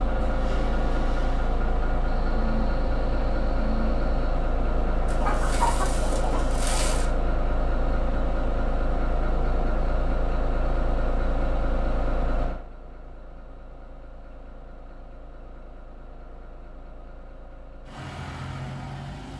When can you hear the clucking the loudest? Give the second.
6 s.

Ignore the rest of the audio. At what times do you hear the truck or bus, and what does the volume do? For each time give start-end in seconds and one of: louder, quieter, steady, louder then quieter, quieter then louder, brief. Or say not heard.
0.0-19.3 quieter.